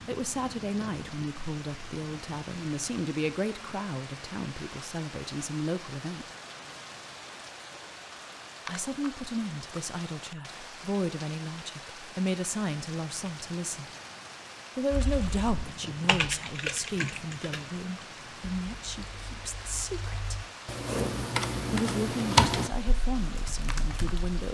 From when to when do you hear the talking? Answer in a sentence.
The talking can be heard from 0.1 to 6.2 s, from 8.7 to 13.8 s, from 14.8 to 20.4 s and from 21.7 to 24.5 s.